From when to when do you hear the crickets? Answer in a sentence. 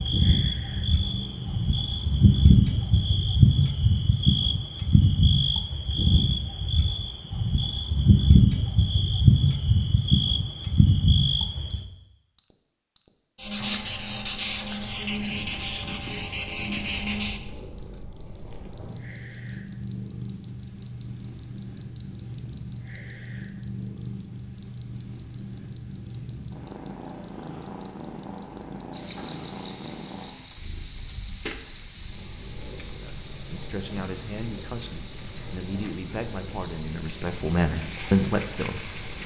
The crickets can be heard from 0.0 to 39.2 s.